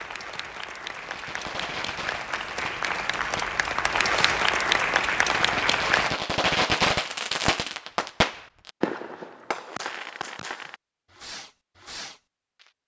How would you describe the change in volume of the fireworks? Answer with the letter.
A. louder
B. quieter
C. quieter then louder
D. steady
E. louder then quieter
E.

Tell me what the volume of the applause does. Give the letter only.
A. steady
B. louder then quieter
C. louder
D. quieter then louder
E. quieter
C.